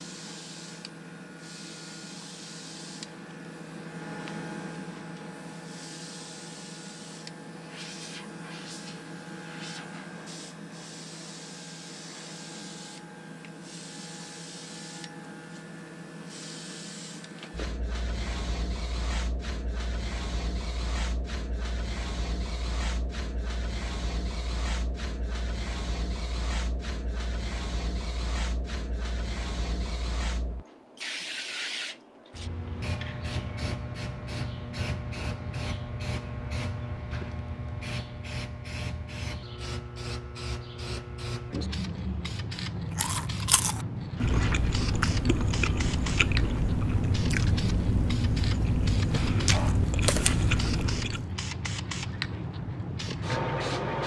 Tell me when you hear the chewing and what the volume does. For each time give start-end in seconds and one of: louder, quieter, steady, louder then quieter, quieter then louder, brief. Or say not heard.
42.9-51.3 steady.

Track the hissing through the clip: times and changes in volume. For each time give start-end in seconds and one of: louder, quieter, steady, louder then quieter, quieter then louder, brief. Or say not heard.
0.0-54.0 louder.